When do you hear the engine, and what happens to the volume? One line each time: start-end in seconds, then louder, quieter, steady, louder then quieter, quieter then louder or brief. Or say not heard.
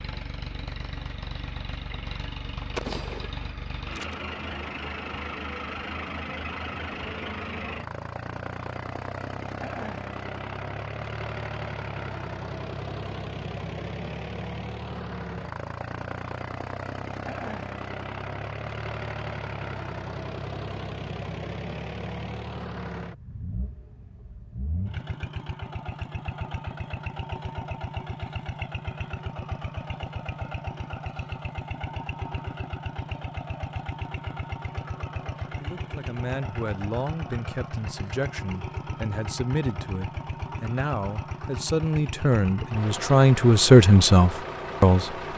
0.0-45.3 steady.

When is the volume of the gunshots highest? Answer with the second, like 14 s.
3 s.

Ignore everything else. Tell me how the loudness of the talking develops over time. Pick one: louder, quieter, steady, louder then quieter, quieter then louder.
louder.